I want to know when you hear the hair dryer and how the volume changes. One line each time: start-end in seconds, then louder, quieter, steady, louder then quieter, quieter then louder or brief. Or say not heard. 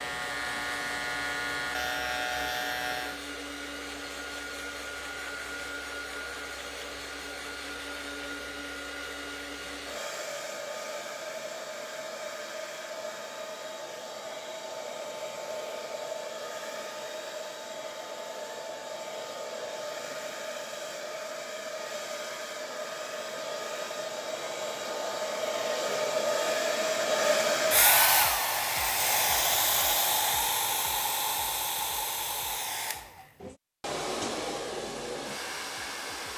0.0-36.3 louder.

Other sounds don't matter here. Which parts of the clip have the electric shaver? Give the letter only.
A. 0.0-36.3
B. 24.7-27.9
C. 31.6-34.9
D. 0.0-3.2
D.